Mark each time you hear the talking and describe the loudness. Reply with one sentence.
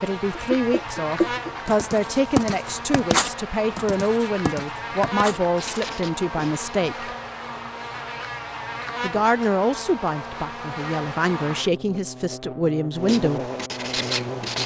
You can hear the talking from 0.0 to 7.1 s, at a steady volume; and from 9.0 to 13.5 s, getting quieter then louder.